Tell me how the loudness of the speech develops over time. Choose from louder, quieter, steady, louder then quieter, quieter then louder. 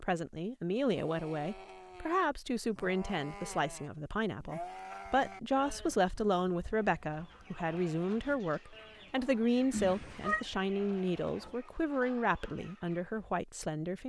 steady.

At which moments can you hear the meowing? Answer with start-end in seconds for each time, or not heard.
9.7-10.4.